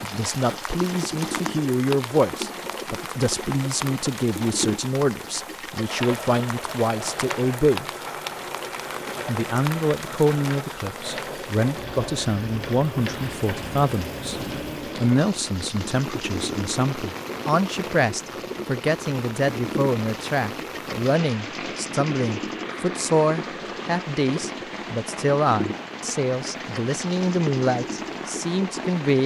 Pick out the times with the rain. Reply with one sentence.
The rain can be heard from 0.0 to 29.2 s.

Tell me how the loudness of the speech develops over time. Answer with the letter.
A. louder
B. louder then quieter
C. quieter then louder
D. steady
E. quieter
D.